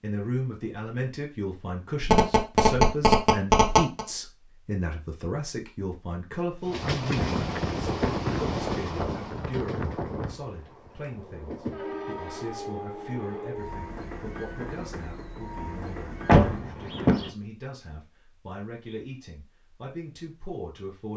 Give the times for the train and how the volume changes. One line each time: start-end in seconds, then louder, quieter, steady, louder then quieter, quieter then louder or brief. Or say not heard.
6.6-16.8 quieter.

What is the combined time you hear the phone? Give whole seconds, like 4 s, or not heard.
2 s.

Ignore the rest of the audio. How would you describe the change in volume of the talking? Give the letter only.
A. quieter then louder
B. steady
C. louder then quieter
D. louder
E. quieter
E.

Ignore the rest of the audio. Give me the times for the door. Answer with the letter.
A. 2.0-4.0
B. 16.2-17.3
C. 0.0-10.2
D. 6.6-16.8
B.